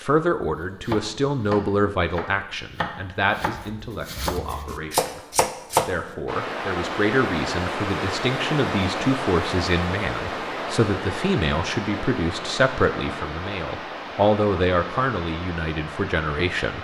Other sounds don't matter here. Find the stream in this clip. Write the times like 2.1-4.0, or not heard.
6.2-16.7.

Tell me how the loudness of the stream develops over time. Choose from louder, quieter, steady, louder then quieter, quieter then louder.
quieter.